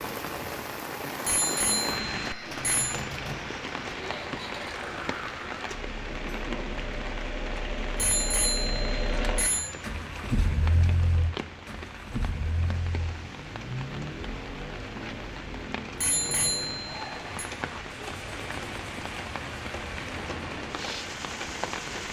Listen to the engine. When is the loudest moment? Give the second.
11 s.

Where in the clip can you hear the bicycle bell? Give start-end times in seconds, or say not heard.
1.2-3.0, 8.0-9.7, 16.0-17.4.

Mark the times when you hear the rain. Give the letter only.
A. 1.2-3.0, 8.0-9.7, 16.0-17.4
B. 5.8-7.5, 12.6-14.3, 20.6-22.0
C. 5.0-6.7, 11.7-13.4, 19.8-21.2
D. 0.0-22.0
D.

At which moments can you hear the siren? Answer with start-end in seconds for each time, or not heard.
not heard.